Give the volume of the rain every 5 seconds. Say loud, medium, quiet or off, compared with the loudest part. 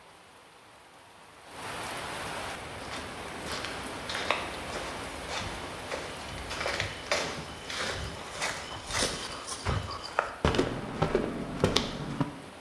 loud, loud, medium.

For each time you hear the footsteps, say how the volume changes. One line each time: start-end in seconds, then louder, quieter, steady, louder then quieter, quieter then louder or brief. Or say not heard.
2.6-12.2 louder.